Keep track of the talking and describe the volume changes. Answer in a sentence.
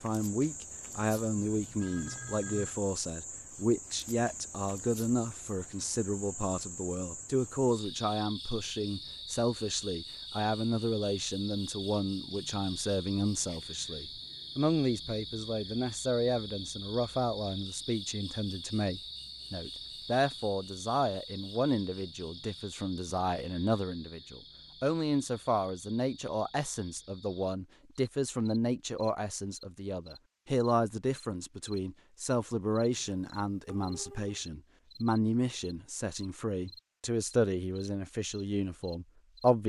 The loudness of the talking stays about the same.